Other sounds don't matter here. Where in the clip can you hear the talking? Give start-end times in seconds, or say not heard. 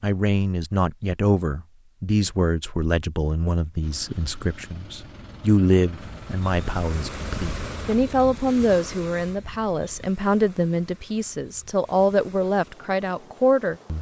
0.0-13.9.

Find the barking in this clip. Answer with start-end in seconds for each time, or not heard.
not heard.